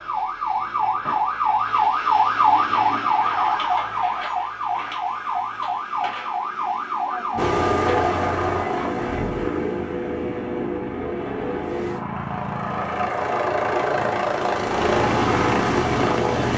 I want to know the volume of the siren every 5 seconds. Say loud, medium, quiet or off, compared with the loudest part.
loud, medium, off, off.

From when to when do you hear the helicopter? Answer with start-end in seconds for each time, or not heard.
7.3-16.5.